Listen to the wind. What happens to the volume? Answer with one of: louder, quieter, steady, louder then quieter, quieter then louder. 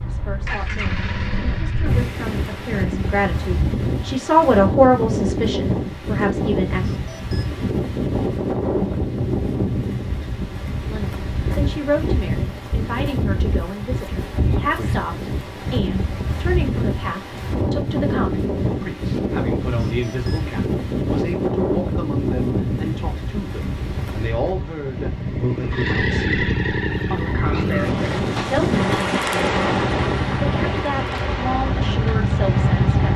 steady.